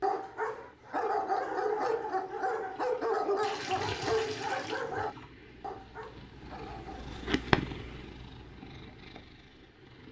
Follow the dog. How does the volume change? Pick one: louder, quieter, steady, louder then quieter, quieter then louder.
quieter.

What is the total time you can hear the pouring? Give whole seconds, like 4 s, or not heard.
2 s.